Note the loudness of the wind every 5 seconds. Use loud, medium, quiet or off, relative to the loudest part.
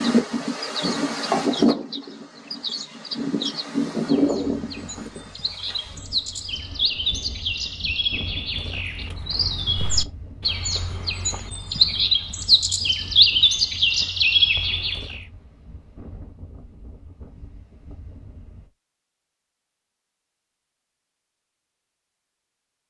loud, quiet, quiet, quiet, off.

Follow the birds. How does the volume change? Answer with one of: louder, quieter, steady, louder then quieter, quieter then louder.
louder.